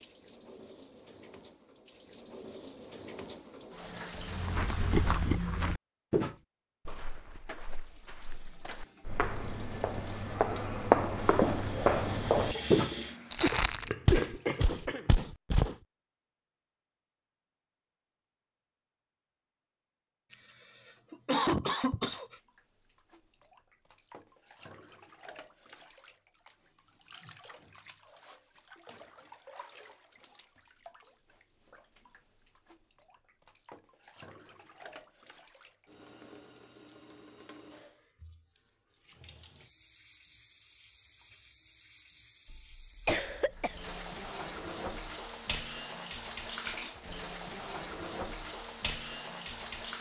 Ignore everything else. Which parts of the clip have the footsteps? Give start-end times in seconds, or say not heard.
4.2-15.8.